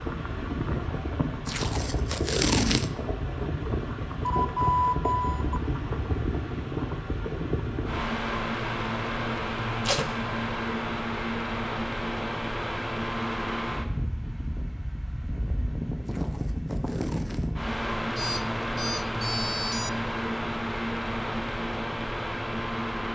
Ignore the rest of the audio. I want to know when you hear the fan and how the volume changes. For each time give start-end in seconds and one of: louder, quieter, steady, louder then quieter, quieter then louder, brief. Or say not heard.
0.0-23.1 steady.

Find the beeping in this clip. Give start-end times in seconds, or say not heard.
4.2-5.6, 18.1-19.9.